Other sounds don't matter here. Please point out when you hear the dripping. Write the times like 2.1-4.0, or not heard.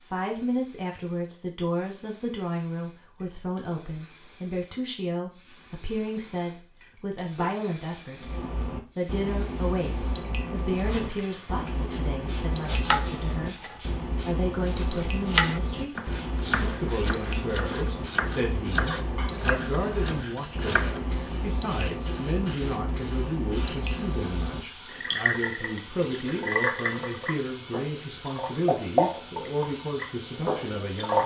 8.2-31.2.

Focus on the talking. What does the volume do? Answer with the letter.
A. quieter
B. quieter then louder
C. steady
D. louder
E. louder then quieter
C.